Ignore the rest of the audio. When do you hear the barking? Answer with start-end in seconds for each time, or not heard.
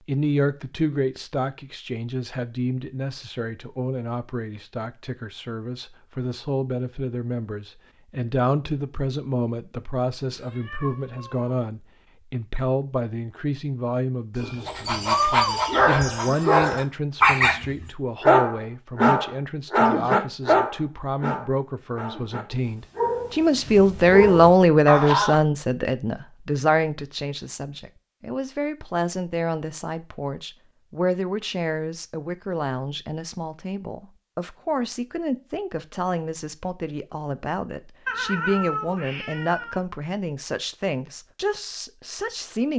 14.4-25.4.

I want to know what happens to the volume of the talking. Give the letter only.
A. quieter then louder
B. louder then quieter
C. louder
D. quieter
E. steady
B.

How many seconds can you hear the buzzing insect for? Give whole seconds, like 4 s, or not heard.
not heard.